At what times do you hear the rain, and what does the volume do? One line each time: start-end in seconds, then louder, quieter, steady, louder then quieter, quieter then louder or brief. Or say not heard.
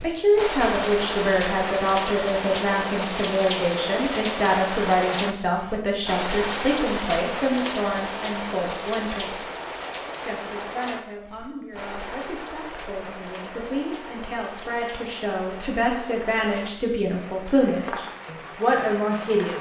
0.0-19.5 quieter.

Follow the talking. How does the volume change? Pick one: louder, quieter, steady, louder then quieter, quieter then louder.
quieter then louder.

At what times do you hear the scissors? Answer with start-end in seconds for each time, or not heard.
not heard.